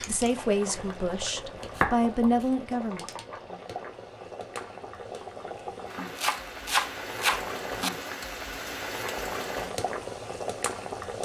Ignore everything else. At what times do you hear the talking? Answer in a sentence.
You can hear the talking from 0.1 to 3.0 s.